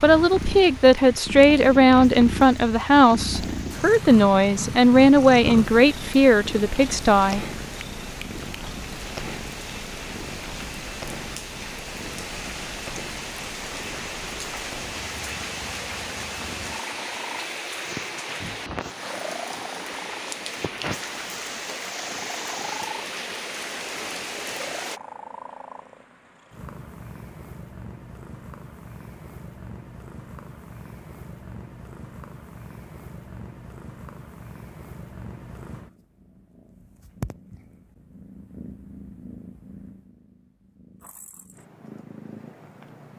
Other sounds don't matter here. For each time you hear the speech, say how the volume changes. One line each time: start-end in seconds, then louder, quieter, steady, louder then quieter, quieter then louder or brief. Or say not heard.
0.0-7.5 steady.